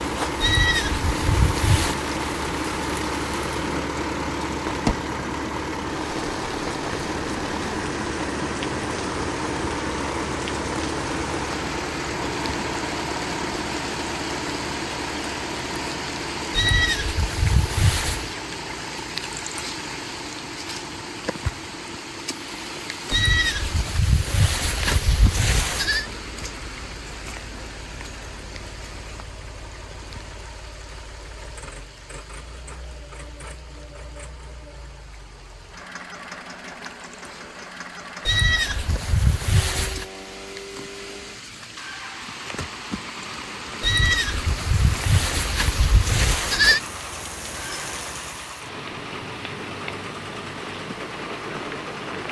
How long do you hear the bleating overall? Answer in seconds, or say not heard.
11 s.